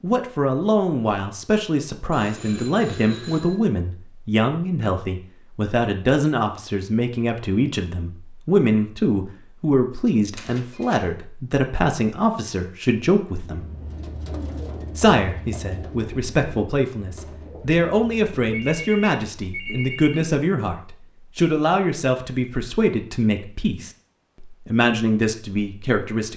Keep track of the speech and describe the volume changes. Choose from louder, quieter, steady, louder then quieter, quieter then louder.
steady.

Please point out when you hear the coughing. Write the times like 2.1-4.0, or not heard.
not heard.